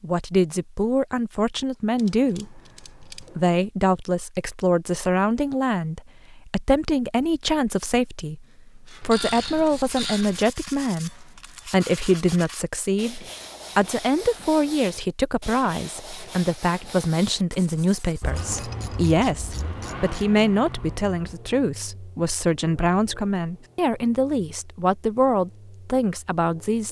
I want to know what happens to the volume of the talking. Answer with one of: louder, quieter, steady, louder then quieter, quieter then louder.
steady.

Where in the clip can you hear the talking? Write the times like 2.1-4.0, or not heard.
0.0-26.8.